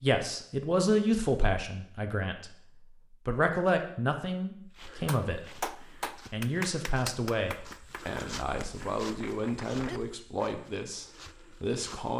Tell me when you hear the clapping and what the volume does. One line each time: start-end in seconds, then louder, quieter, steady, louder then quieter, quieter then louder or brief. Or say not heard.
5.0-10.4 quieter then louder.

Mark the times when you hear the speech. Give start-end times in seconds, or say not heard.
0.0-12.1.